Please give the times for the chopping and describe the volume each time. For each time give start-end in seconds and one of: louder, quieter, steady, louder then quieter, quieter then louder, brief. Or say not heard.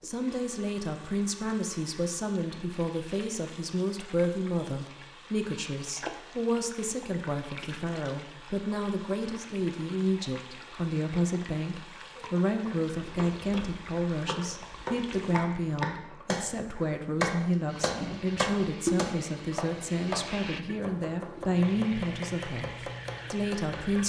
12.2-24.0 louder then quieter.